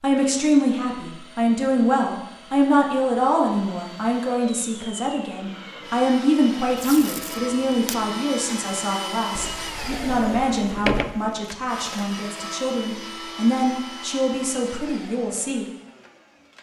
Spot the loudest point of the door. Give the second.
11 s.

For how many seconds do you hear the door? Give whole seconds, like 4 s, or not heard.
2 s.